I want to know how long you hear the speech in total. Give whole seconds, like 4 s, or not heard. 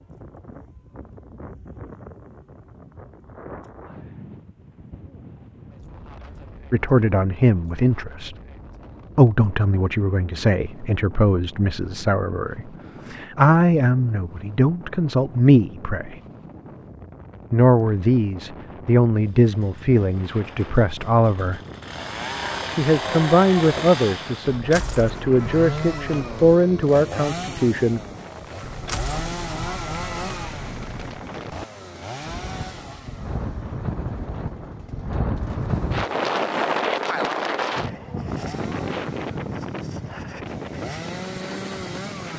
18 s.